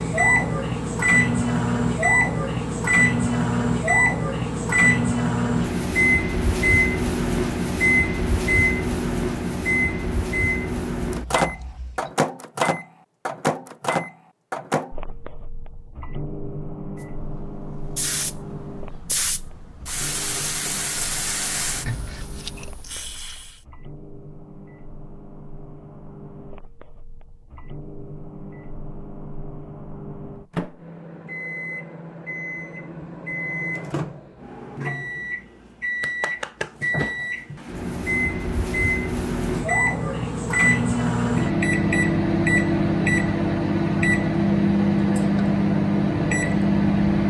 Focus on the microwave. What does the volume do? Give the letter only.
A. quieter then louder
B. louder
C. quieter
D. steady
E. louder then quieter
A.